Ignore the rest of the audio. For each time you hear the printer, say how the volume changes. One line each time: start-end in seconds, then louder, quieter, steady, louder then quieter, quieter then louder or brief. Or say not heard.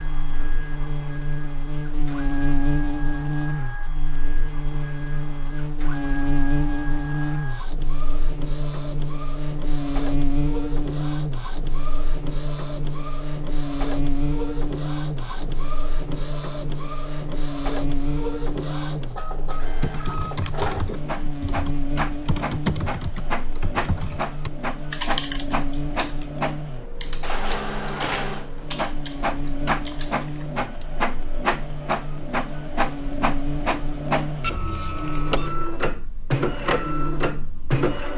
0.0-38.1 louder.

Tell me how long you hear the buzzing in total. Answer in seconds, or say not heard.
38 s.